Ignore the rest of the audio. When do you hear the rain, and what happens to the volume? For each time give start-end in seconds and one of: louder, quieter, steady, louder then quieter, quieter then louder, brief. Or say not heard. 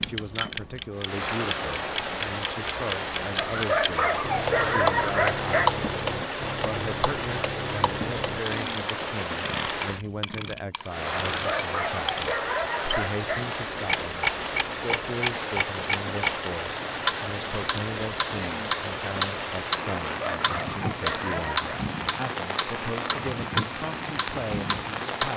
0.0-25.3 steady.